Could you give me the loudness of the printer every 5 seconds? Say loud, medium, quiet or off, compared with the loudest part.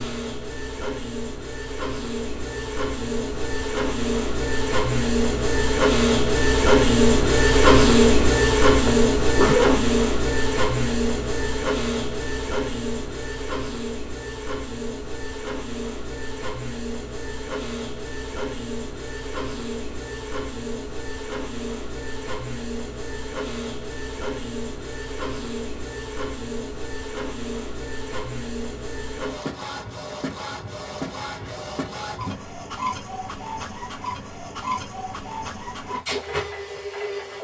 medium, loud, medium, quiet, quiet, quiet, quiet, quiet.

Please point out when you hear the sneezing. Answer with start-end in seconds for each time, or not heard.
8.8-9.8.